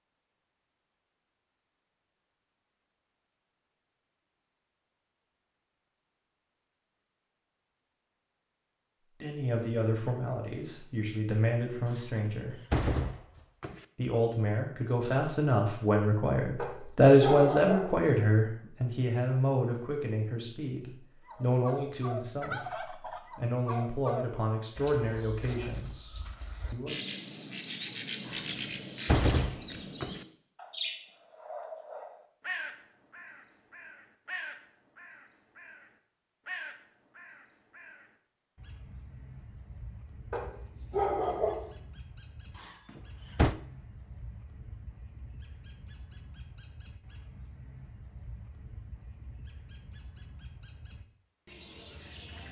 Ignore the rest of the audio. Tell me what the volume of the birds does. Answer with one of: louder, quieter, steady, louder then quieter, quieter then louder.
quieter.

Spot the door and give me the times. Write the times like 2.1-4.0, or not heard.
11.9-13.8, 28.2-30.2, 42.5-43.5.